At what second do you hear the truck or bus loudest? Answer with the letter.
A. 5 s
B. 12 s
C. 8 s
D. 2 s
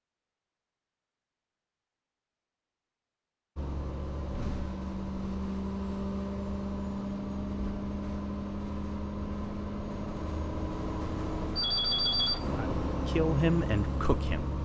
B.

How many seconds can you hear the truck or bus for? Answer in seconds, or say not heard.
11 s.